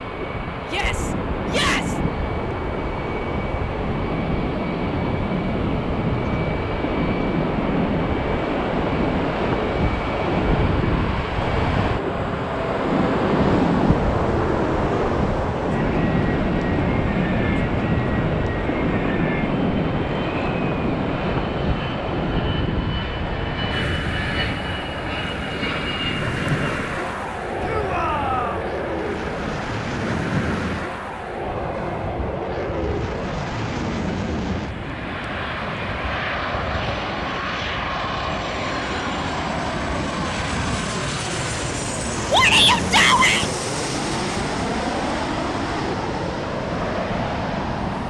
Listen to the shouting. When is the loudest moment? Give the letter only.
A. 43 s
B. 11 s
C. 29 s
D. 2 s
A.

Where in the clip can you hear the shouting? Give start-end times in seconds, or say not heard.
0.7-2.0, 27.6-28.7, 42.3-43.5.